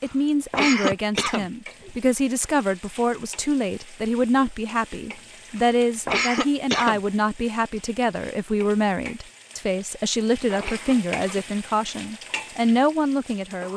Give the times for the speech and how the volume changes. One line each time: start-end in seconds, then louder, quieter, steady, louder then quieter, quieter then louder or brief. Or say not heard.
0.0-13.7 steady.